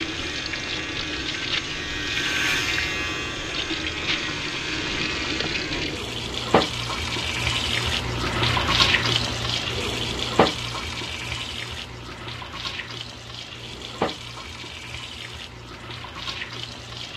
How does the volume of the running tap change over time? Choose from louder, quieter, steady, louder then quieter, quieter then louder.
louder then quieter.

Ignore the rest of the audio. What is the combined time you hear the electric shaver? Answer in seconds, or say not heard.
6 s.